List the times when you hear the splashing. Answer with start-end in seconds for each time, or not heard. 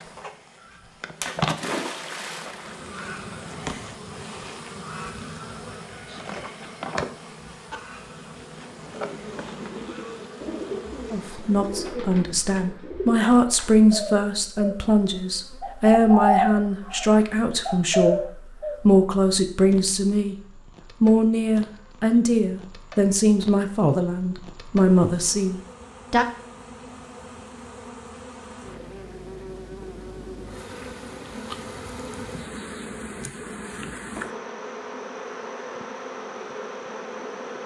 1.2-2.8.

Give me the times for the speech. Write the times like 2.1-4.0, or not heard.
11.1-20.4, 21.0-26.2.